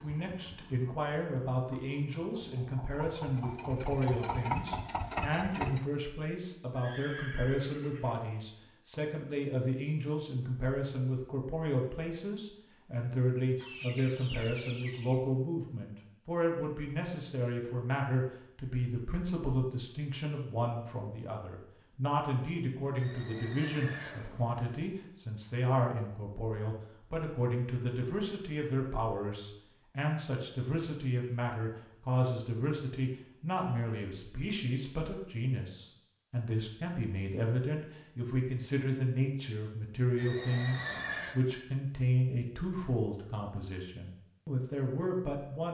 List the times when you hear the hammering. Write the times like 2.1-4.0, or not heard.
not heard.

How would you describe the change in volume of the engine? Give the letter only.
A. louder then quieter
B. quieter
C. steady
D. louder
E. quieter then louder
D.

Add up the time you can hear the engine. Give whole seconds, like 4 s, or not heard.
6 s.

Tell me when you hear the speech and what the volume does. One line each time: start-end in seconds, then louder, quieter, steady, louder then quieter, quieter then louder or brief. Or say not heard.
0.0-45.6 steady.